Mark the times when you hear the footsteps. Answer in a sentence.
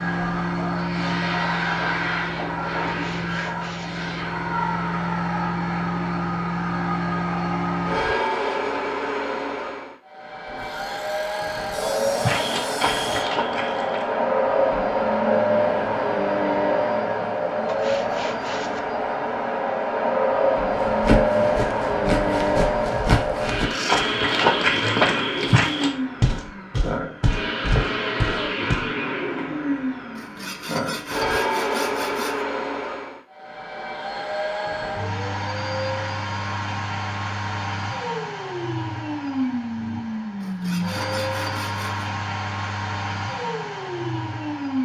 You can hear the footsteps from 12.2 to 14.2 s and from 20.6 to 28.9 s.